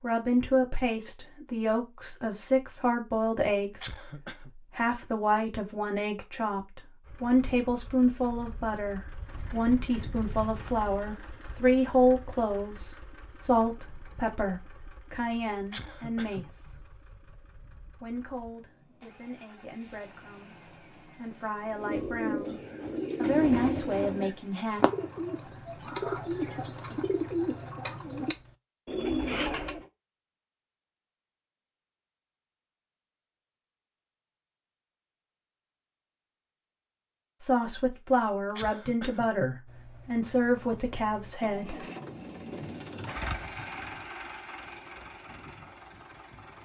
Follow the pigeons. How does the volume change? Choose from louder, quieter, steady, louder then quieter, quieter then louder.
steady.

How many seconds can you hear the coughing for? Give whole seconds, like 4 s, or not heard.
2 s.